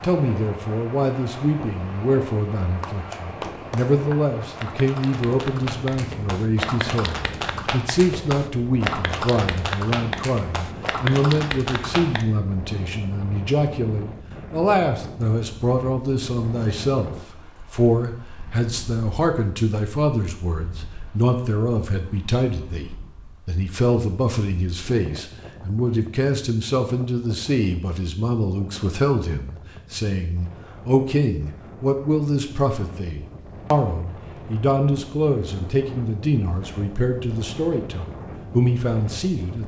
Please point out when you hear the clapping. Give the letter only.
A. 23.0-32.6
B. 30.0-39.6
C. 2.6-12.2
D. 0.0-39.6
C.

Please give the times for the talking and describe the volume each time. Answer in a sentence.
The talking can be heard from 0.0 to 39.6 s, at a steady volume.